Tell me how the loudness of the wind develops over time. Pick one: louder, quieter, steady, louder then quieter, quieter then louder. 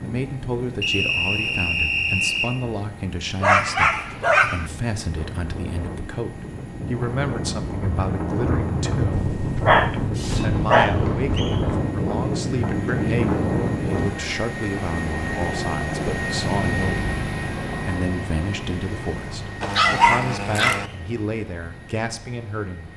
louder.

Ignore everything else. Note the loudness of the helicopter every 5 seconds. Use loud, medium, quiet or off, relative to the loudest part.
quiet, quiet, medium, loud, quiet.